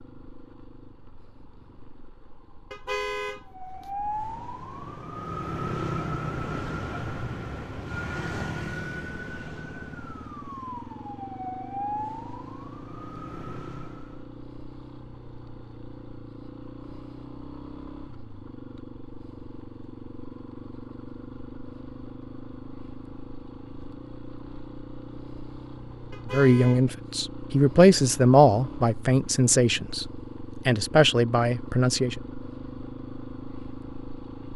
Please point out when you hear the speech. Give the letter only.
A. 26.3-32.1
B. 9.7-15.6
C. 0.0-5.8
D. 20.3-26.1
A.